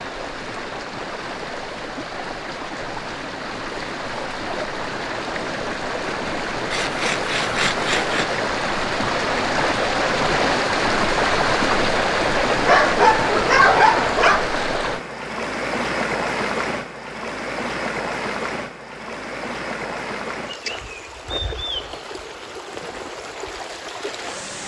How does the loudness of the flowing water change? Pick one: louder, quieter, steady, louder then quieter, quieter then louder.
louder then quieter.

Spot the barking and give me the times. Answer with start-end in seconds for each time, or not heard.
12.7-14.4.